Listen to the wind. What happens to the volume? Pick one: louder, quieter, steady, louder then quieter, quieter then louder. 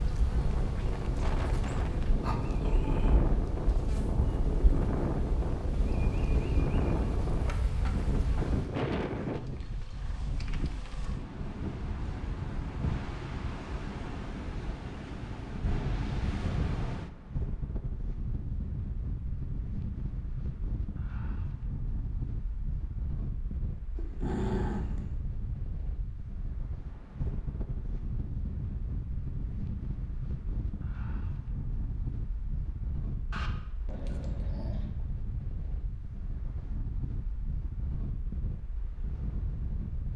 quieter.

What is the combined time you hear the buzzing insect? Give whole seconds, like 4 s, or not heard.
9 s.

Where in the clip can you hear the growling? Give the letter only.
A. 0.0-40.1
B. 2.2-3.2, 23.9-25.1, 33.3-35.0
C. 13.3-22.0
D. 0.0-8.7
B.